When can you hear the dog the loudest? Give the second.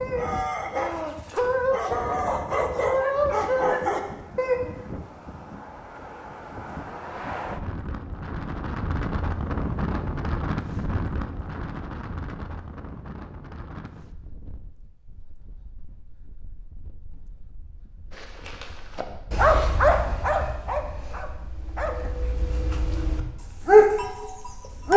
24 s.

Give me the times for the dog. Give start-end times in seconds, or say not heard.
0.0-4.6, 18.1-24.9.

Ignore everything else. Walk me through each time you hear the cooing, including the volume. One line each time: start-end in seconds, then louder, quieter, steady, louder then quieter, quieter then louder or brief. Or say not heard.
not heard.